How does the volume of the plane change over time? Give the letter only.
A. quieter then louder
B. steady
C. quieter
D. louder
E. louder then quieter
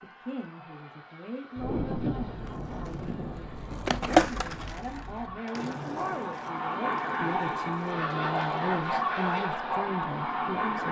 D.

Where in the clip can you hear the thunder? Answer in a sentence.
The thunder can be heard from 1.6 to 5.4 s.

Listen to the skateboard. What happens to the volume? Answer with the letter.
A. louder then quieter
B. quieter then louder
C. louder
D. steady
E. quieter
A.